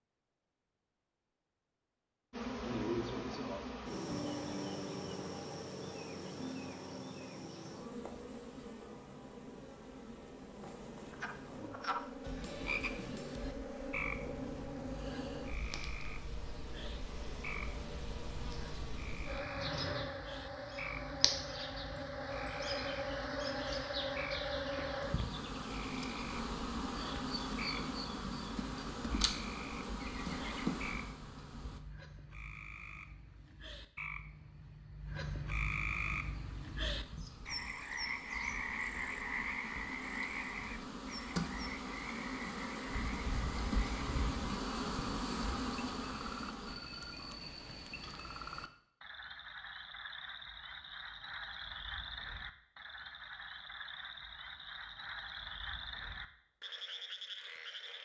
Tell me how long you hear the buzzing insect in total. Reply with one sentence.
You can hear the buzzing insect for 40 seconds altogether.